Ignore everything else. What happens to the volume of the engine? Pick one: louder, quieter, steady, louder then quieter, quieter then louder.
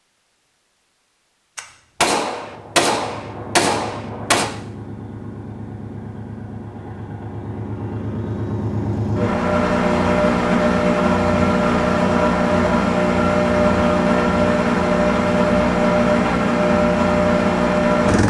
louder.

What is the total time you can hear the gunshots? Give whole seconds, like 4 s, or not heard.
3 s.